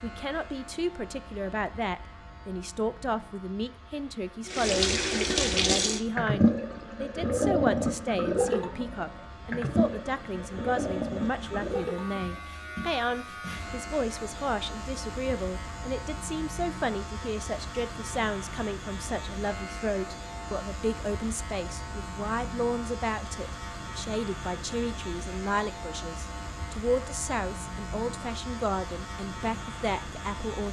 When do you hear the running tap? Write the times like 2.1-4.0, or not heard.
4.5-12.6.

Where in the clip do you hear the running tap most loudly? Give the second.
6 s.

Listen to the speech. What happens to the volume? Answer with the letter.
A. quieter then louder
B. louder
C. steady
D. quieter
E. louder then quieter
C.